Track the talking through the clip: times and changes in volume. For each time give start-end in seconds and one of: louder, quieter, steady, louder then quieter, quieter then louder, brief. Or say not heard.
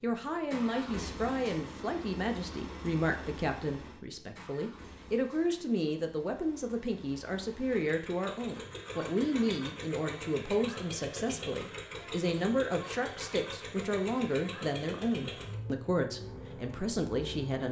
0.0-17.6 steady.